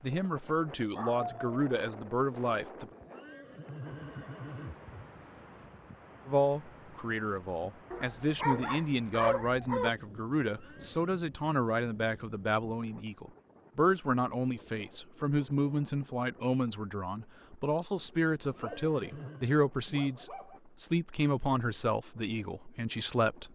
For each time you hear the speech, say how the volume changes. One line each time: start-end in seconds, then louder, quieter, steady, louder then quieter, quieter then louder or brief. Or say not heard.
0.0-2.9 brief
6.2-23.4 steady.